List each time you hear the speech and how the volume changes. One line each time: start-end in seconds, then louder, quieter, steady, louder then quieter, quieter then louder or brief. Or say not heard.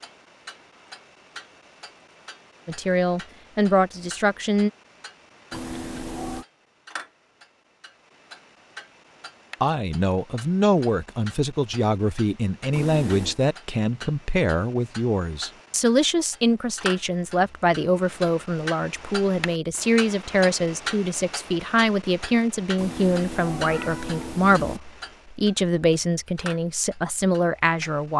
2.6-4.7 brief
9.6-28.1 steady.